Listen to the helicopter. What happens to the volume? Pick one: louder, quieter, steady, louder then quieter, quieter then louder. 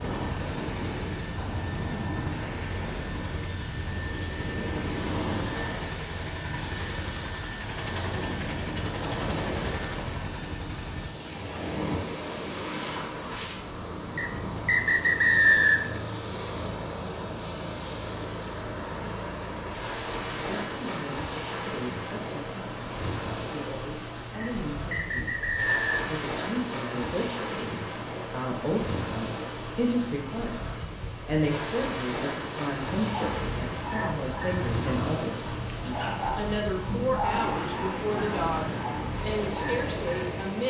steady.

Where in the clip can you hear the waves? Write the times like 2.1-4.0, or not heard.
0.0-40.6.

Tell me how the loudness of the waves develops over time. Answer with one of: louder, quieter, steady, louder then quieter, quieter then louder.
steady.